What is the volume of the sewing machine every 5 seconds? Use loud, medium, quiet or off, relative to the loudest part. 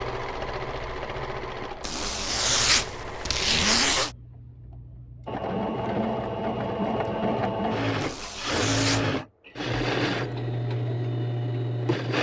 medium, loud, loud.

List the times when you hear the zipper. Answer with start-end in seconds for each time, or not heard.
1.8-4.1, 8.0-9.2.